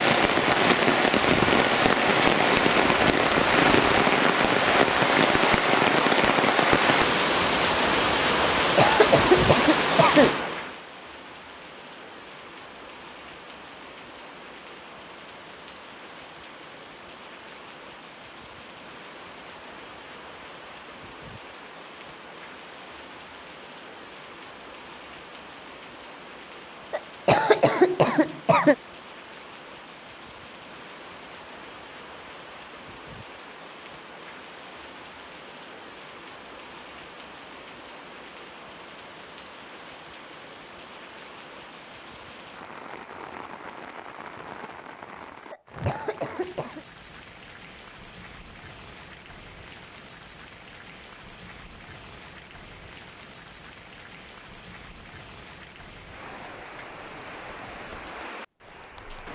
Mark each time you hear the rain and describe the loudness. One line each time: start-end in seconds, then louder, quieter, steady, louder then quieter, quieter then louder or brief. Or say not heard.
0.0-59.2 quieter.